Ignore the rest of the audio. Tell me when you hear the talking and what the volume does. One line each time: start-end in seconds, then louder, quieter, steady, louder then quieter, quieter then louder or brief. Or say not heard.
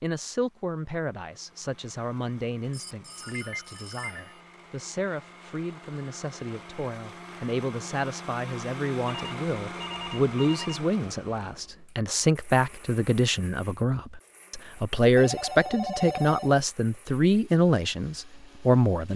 0.0-19.1 louder.